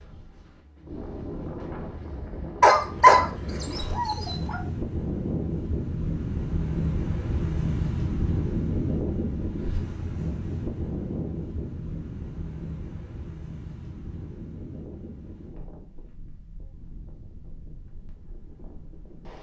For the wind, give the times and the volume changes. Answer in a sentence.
You can hear the wind from 0.0 to 19.3 s, getting louder then quieter.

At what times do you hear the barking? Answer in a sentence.
The barking can be heard from 2.6 to 4.6 s.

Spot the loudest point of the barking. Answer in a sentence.
The loudest moment of the barking is at 3 seconds.